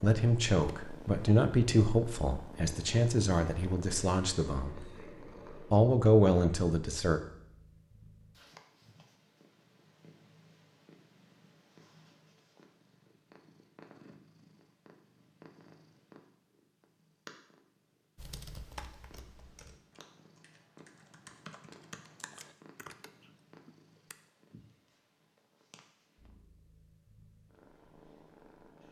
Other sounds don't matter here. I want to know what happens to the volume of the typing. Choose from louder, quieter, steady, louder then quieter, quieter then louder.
quieter then louder.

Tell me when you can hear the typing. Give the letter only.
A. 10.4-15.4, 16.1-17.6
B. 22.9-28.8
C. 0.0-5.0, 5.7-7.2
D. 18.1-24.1
D.